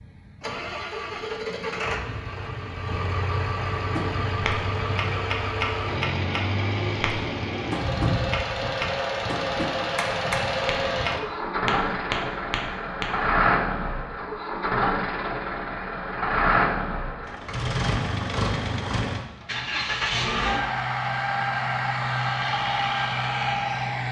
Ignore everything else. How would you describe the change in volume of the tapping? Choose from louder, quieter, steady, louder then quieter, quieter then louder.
steady.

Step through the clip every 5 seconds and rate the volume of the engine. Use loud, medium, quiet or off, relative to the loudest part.
medium, loud, loud, loud, loud.